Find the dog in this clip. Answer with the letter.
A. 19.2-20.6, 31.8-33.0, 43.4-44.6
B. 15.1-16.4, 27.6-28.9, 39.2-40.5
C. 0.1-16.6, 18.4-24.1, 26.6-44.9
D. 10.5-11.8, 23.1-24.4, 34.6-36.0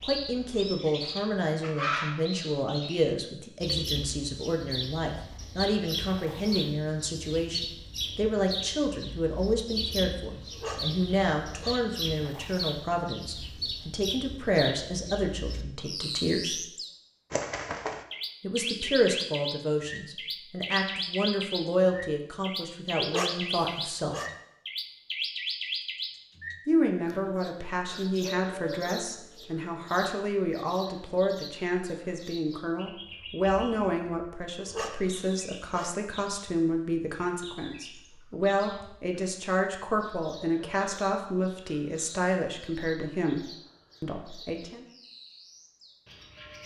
D.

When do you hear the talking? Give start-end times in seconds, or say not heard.
0.1-16.6, 18.4-24.1, 26.6-44.9.